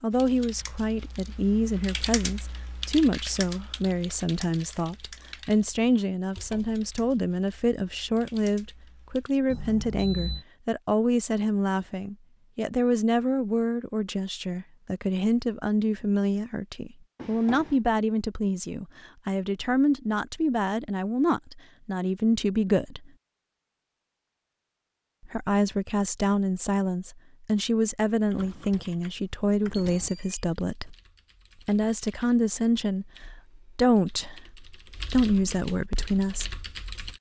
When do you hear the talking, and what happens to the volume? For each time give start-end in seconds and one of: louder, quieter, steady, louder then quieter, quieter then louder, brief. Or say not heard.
0.0-23.1 steady
25.2-30.9 steady
31.6-33.1 brief
33.8-36.6 brief.